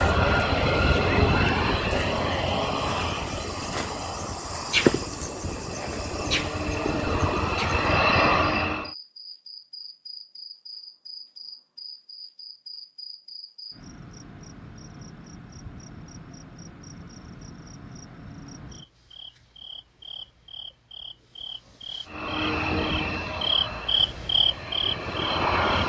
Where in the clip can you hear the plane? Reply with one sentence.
You can hear the plane from 0.0 to 8.9 s and from 22.1 to 25.8 s.